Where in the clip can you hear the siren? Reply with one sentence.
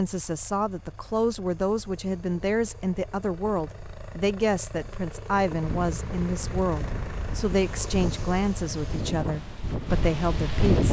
You can't hear the siren here.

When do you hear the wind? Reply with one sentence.
The wind can be heard from 5.3 to 10.8 s.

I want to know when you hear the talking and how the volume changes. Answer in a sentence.
The talking can be heard from 0.0 to 10.8 s, at a steady volume.